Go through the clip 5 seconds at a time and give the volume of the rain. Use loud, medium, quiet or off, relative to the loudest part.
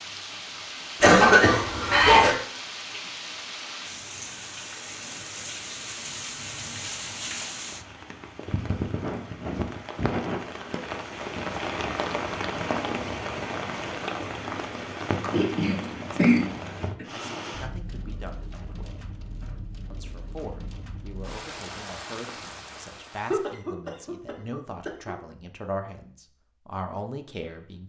medium, loud, loud, medium, medium, off.